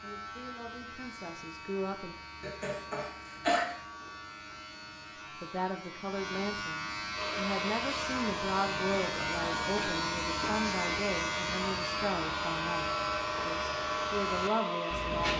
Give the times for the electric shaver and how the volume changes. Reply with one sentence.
You can hear the electric shaver from 0.0 to 15.3 s, getting louder.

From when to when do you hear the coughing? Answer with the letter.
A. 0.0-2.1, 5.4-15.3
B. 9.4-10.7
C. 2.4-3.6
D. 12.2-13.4
C.